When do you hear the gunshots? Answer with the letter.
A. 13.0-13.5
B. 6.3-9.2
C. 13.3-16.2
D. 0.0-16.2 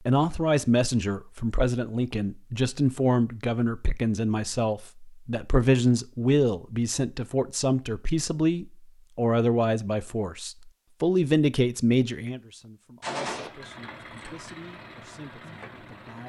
A.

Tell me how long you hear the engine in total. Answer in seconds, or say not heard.
3 s.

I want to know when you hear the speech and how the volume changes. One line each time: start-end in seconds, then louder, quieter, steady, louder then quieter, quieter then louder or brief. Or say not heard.
0.0-16.2 quieter.